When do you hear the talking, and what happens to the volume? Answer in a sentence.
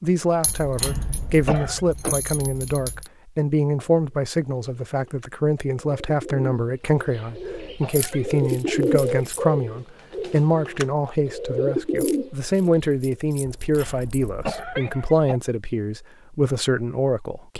You can hear the talking from 0.0 to 17.5 s, at a steady volume.